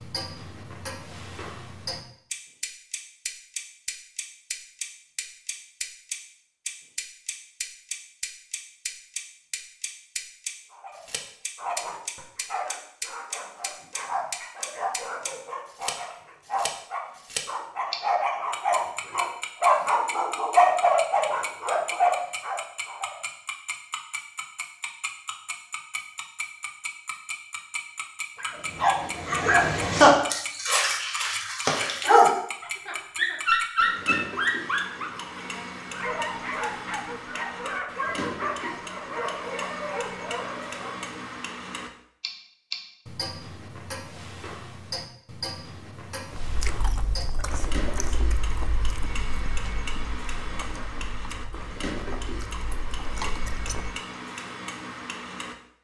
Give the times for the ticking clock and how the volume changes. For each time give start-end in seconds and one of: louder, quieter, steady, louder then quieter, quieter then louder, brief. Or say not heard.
0.0-55.5 steady.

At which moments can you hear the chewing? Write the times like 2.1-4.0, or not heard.
46.3-54.0.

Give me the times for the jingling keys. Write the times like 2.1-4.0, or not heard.
not heard.